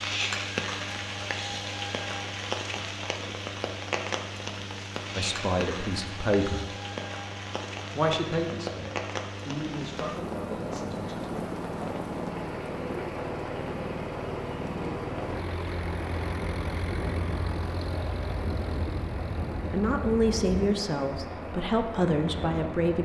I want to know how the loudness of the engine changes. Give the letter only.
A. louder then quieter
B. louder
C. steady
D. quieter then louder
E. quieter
B.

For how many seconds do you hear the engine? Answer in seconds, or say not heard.
23 s.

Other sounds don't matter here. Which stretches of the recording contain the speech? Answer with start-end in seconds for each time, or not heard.
5.2-6.7, 8.0-11.4, 19.7-23.0.